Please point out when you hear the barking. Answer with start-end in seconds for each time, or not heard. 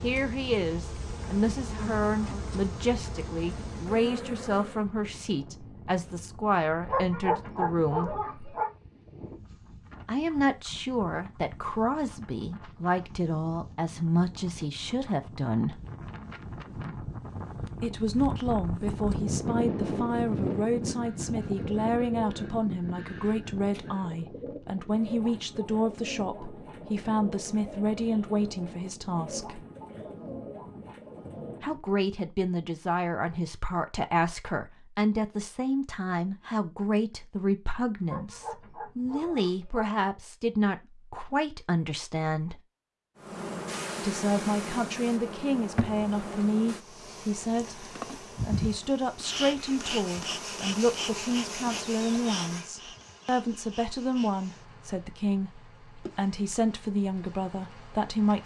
6.8-8.7, 38.0-39.9.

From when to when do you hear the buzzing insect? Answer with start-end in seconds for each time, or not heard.
0.0-4.9, 43.1-58.4.